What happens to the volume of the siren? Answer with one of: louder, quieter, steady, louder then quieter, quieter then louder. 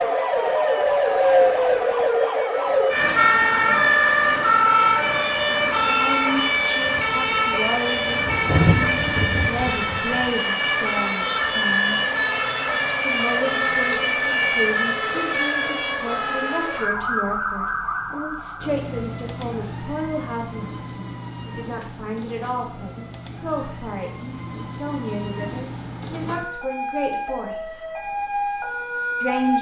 quieter.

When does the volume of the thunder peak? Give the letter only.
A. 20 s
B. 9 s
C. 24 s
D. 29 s
B.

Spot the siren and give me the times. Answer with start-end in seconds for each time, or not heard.
0.0-29.5.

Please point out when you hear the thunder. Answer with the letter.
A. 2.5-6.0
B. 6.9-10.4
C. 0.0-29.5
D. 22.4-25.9
B.